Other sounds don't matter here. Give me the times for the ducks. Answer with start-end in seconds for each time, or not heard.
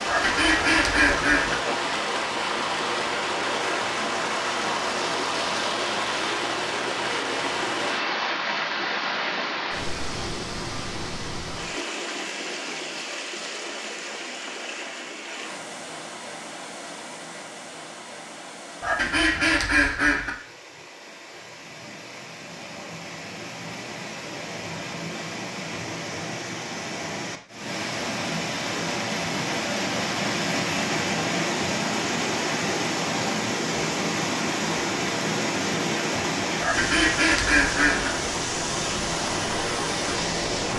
0.1-1.6, 18.8-20.3, 36.6-38.1.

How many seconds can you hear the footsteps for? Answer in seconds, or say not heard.
not heard.